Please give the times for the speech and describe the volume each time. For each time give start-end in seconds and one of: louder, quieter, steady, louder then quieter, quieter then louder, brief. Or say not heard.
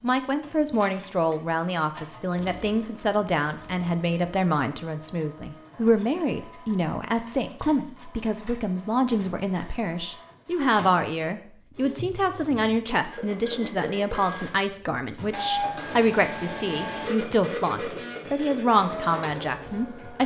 0.0-20.2 steady.